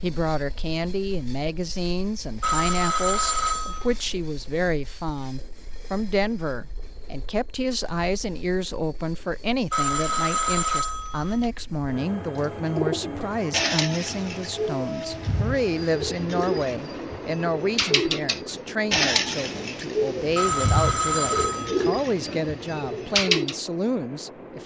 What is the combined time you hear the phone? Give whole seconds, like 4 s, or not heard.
5 s.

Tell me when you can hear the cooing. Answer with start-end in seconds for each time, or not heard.
12.2-23.6.